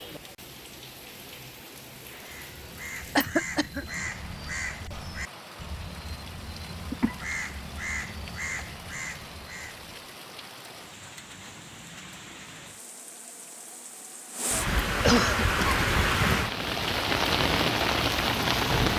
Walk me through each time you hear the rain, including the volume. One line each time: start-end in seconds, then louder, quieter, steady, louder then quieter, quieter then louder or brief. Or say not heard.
0.0-18.9 louder.